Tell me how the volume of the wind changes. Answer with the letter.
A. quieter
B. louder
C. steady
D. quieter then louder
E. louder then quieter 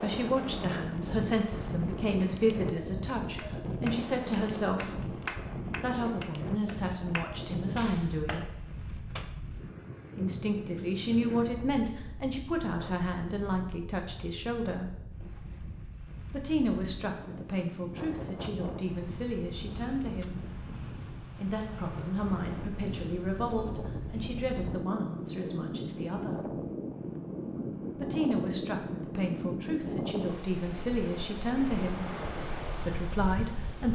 D.